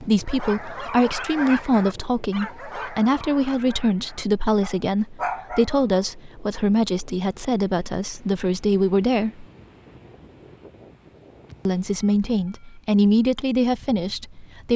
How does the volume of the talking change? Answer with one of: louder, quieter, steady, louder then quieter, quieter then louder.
steady.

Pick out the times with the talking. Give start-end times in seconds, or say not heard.
0.0-9.4, 11.7-14.7.